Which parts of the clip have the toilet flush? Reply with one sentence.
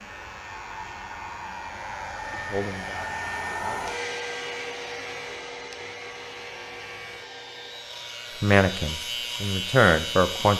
You can't hear the toilet flush here.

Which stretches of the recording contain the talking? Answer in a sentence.
The talking can be heard from 2.2 to 3.9 s and from 8.4 to 10.5 s.